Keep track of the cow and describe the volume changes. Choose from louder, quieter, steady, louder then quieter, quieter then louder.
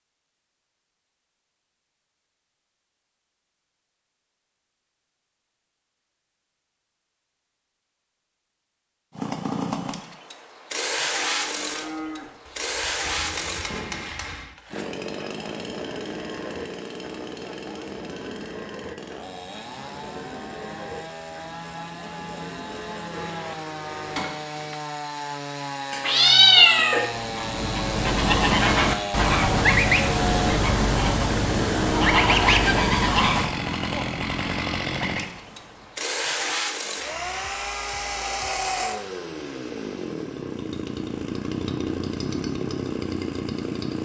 steady.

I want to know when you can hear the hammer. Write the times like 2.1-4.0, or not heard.
13.1-14.6, 23.1-24.8.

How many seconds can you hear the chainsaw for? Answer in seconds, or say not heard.
35 s.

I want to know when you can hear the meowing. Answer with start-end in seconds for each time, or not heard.
25.9-27.0.